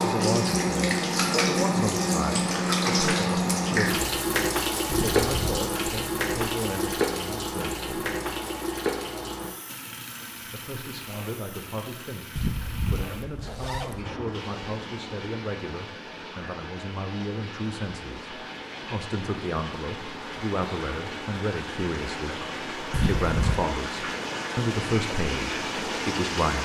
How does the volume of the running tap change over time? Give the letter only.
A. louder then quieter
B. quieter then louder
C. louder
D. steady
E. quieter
B.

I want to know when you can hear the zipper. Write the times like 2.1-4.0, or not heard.
4.8-5.7, 12.3-14.1, 22.9-23.6.